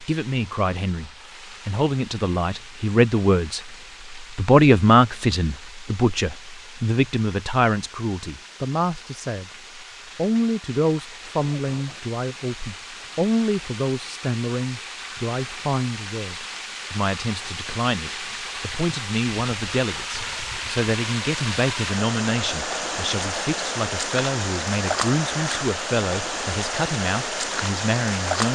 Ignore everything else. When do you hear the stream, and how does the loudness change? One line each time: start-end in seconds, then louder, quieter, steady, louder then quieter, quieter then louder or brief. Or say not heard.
0.0-28.5 louder.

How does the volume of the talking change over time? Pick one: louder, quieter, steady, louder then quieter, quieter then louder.
quieter.